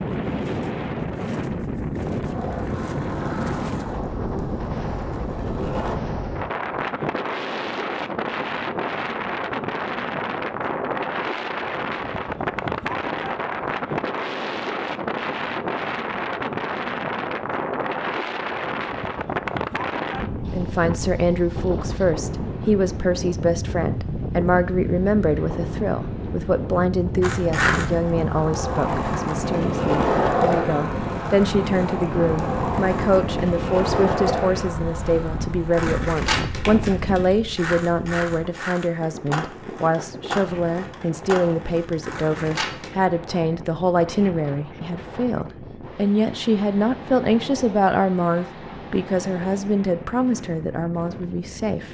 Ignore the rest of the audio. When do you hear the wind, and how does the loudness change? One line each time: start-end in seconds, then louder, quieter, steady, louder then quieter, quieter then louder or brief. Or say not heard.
0.0-51.8 quieter.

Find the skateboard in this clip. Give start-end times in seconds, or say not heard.
2.2-6.0, 27.2-42.9.